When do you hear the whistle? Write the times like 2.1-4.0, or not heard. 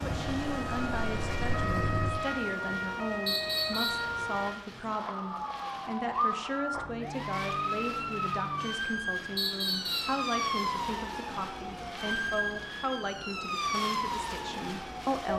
3.2-4.1, 9.3-10.2.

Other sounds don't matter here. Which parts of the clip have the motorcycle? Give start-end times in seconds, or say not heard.
0.0-2.1.